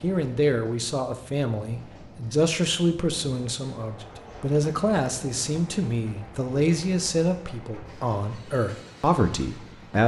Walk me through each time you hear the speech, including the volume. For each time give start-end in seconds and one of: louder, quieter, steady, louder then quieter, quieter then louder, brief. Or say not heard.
0.0-10.0 steady.